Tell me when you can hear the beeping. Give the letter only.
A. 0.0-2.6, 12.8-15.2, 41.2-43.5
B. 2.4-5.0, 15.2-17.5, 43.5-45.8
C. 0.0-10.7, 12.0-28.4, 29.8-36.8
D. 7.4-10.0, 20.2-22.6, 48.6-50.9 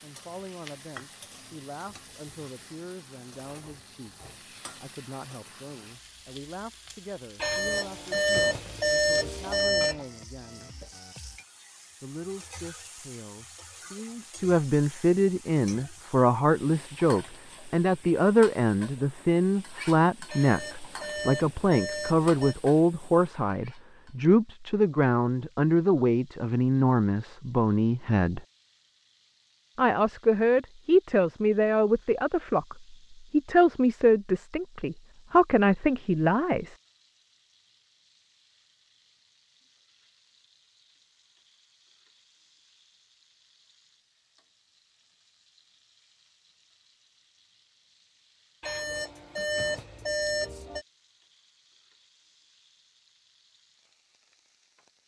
D.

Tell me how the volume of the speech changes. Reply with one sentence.
The volume of the speech goes up.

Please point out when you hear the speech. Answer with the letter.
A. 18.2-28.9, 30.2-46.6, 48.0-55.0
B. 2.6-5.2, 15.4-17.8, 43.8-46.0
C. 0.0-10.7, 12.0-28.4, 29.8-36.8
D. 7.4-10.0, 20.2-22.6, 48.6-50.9
C.